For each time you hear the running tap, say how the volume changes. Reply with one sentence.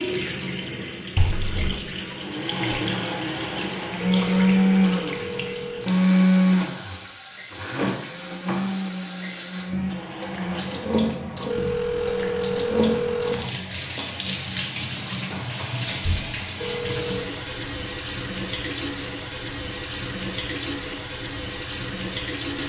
The running tap can be heard from 0.0 to 22.6 s, getting quieter then louder.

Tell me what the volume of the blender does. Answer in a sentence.
The volume of the blender goes up, then down.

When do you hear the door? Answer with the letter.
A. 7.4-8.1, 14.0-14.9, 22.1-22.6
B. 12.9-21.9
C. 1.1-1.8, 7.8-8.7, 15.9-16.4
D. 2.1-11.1
C.